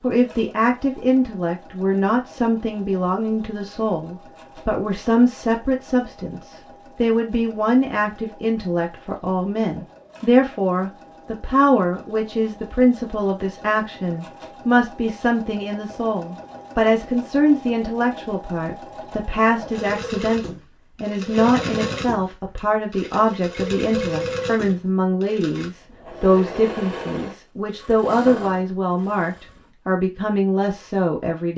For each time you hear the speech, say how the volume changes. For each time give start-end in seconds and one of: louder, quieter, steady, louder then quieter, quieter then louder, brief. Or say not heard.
0.0-31.5 steady.